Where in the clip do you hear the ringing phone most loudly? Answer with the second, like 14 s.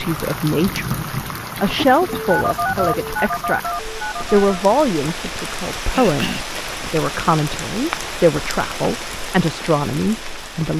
3 s.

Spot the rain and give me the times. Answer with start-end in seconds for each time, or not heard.
0.0-10.7.